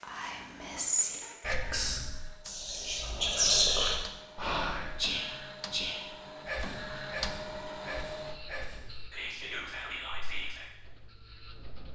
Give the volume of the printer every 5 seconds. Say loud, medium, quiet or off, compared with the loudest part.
medium, loud, quiet.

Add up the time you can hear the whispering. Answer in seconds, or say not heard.
11 s.